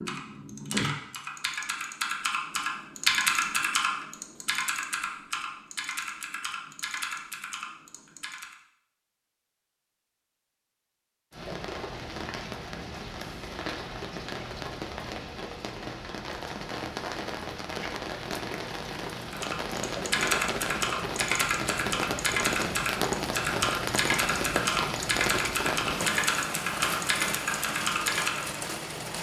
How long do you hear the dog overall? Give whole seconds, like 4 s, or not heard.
not heard.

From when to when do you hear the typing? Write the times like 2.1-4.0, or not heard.
0.0-8.6, 19.2-28.6.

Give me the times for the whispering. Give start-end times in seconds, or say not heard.
not heard.